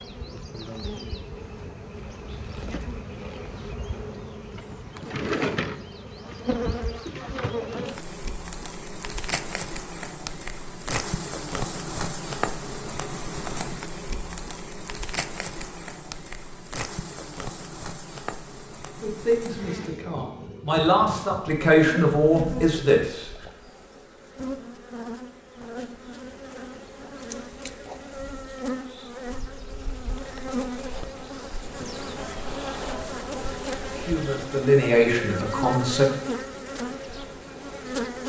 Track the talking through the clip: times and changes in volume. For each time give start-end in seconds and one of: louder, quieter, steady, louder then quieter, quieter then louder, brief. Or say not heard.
19.0-23.0 louder
33.9-36.0 brief.